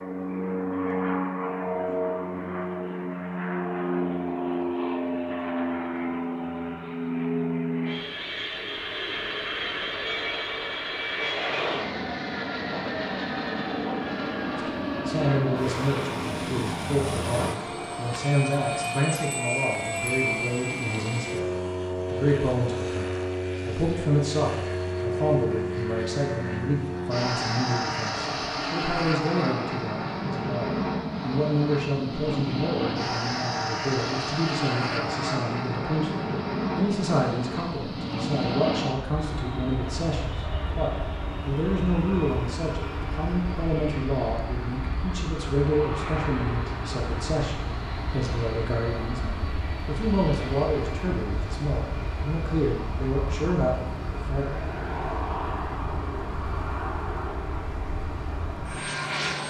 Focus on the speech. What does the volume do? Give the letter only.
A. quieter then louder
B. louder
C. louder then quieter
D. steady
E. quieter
D.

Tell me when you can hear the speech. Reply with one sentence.
The speech can be heard from 14.6 to 21.4 s and from 22.1 to 54.5 s.